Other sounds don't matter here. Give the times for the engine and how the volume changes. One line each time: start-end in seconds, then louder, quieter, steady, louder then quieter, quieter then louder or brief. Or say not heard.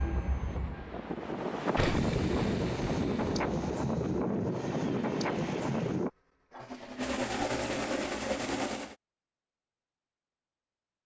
0.0-2.1 brief
4.4-8.9 louder.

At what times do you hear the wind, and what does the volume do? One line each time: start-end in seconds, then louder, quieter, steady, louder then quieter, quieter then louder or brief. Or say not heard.
0.0-6.1 louder.